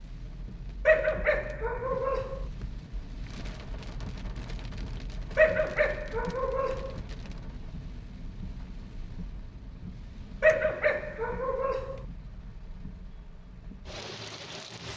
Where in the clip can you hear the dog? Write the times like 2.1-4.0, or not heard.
0.8-2.5, 5.3-7.0, 10.4-12.0.